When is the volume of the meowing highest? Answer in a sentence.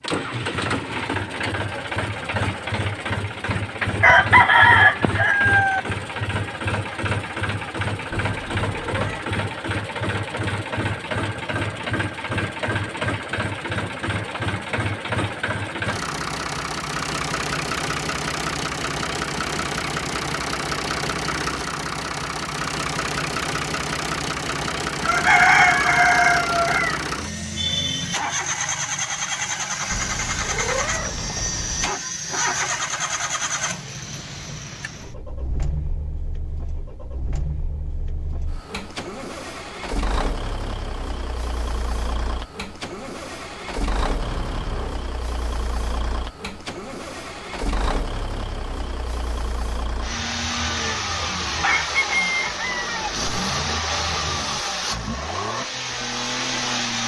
The volume of the meowing peaks at 31 seconds.